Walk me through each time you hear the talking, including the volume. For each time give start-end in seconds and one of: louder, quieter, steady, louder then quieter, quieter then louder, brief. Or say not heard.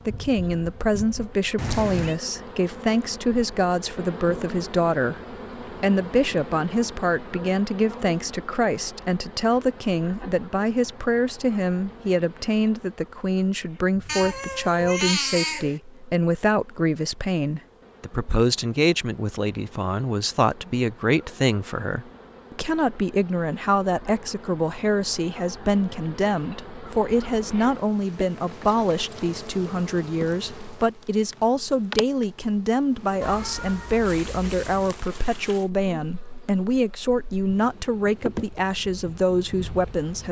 0.1-40.2 steady.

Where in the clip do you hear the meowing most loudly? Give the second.
15 s.